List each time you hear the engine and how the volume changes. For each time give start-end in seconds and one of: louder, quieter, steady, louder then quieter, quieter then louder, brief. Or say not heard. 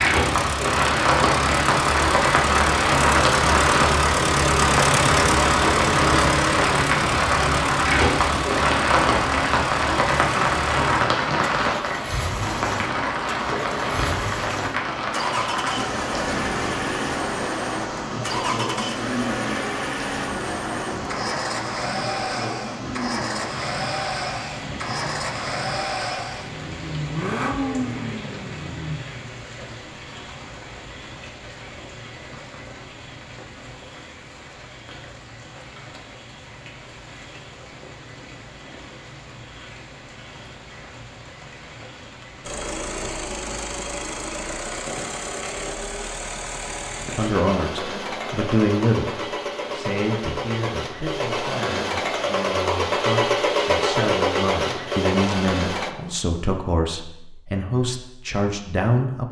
0.0-29.0 quieter
42.4-56.0 louder.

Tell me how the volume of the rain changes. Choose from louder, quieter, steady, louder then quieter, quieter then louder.
quieter.